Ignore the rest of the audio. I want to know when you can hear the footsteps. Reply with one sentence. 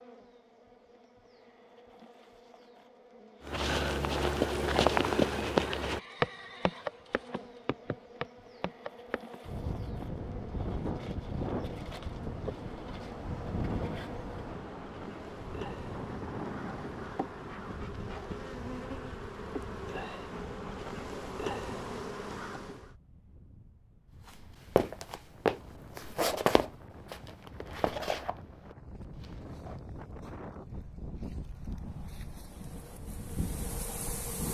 You can hear the footsteps from 3.5 to 9.4 s and from 24.2 to 29.8 s.